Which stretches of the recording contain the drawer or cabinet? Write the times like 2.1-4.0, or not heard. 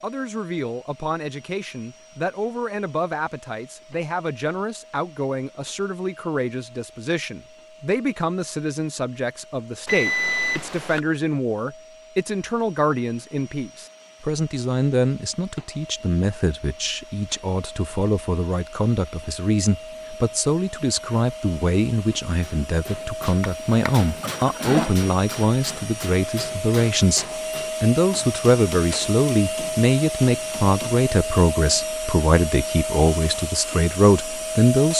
23.4-24.9.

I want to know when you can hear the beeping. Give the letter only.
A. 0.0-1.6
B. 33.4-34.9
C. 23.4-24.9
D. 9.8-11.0
D.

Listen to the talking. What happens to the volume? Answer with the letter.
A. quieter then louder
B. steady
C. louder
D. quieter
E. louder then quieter
C.